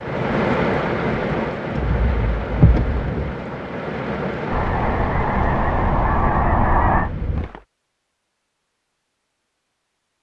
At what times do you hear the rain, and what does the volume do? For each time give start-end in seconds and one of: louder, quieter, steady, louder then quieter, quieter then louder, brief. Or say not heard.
0.0-7.7 quieter.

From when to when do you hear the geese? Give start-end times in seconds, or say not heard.
4.5-7.1.